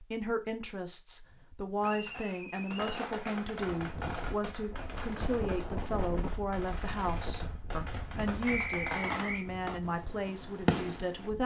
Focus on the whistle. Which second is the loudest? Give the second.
9 s.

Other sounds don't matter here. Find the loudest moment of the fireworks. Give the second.
11 s.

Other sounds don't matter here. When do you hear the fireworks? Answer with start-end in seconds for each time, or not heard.
1.2-11.3.